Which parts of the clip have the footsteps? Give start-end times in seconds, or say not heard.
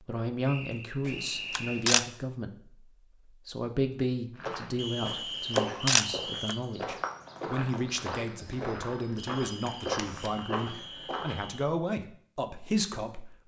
4.3-11.6.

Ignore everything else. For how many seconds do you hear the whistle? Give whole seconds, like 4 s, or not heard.
6 s.